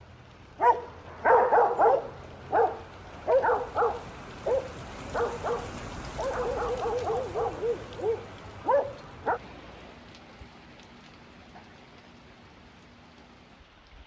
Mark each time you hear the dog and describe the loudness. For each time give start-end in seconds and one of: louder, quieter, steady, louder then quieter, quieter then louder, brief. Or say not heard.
0.6-9.4 quieter.